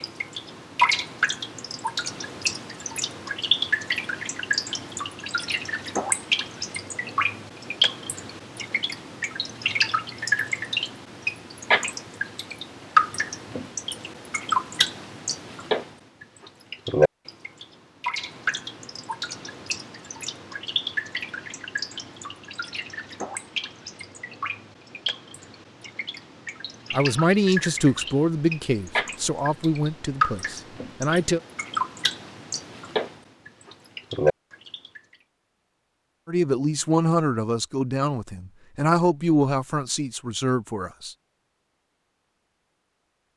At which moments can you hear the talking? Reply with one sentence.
The talking can be heard from 26.9 to 31.4 s and from 36.2 to 41.1 s.